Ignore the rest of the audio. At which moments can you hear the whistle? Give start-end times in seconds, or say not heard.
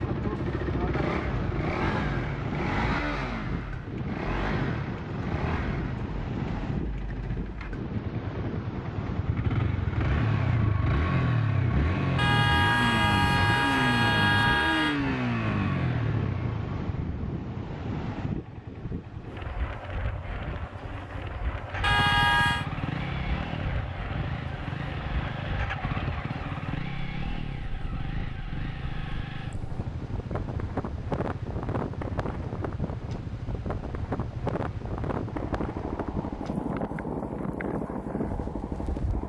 not heard.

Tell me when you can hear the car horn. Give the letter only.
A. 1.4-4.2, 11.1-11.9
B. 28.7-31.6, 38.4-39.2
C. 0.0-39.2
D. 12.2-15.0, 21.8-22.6
D.